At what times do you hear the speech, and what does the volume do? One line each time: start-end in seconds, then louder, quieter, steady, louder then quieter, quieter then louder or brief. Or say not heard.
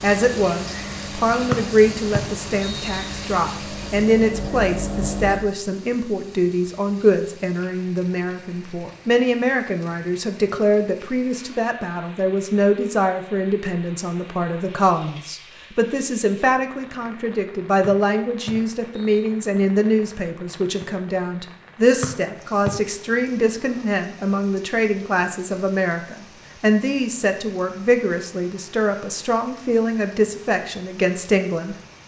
0.0-31.8 steady.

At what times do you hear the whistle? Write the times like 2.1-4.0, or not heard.
1.5-3.1, 17.8-19.2, 22.0-22.7.